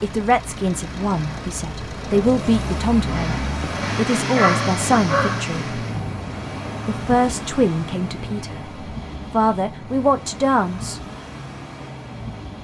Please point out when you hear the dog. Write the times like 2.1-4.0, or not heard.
3.7-5.5.